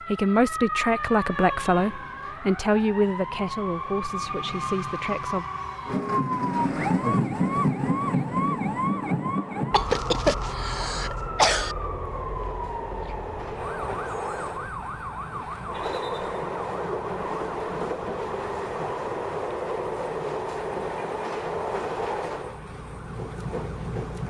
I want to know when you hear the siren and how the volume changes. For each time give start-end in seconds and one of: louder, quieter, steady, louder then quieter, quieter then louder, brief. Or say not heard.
0.0-24.2 louder then quieter.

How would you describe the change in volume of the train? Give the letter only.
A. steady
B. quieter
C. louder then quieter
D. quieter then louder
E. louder
E.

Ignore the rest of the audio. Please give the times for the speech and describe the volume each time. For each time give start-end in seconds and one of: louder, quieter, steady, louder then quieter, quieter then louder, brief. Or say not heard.
0.1-5.5 quieter.